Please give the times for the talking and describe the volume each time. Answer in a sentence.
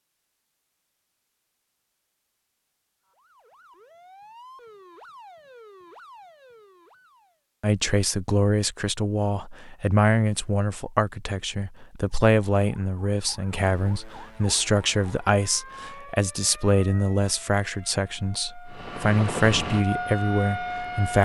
The talking can be heard from 7.6 to 21.2 s, at a steady volume.